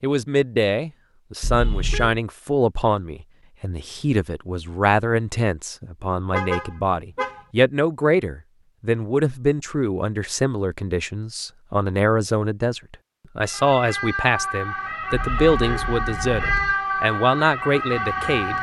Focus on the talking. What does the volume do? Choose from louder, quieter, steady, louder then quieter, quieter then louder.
steady.